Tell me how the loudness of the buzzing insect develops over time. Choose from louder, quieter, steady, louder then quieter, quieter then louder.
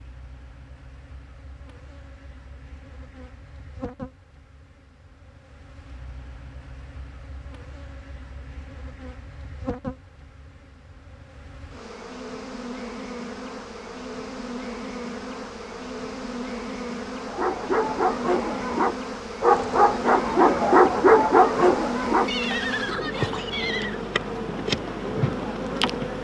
louder.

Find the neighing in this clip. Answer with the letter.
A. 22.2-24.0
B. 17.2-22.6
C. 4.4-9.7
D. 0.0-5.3
A.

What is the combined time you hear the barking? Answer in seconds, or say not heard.
5 s.